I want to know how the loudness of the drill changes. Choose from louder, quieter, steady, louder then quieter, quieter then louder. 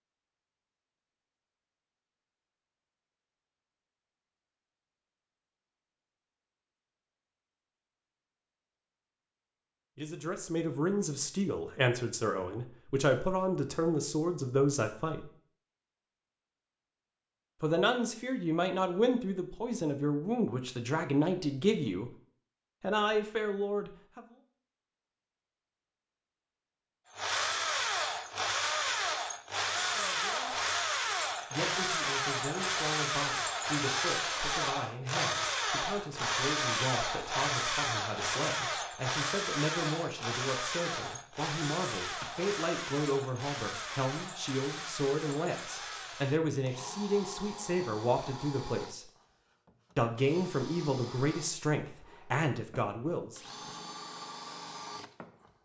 quieter.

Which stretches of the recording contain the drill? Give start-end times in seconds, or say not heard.
27.1-55.5.